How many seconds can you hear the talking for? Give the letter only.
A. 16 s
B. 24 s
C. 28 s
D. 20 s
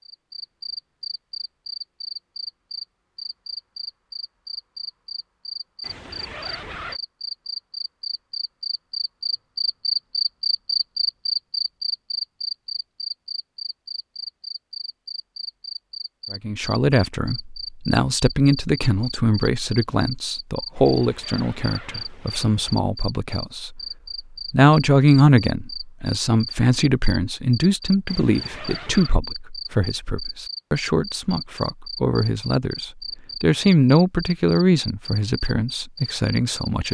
D.